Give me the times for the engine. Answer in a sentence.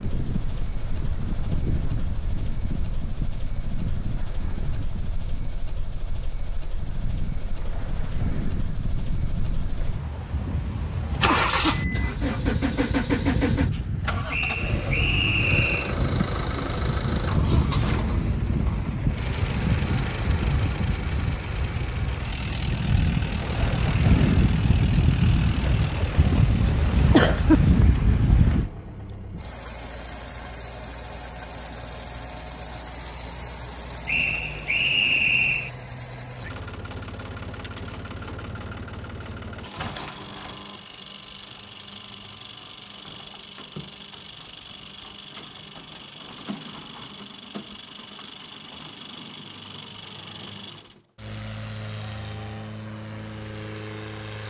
The engine can be heard from 0.0 to 54.4 s.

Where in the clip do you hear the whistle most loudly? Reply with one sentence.
The loudest moment of the whistle is at 35 seconds.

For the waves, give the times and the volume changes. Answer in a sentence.
The waves can be heard from 0.0 to 28.7 s, getting louder.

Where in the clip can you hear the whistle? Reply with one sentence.
You can hear the whistle from 14.3 to 15.9 s and from 34.0 to 35.7 s.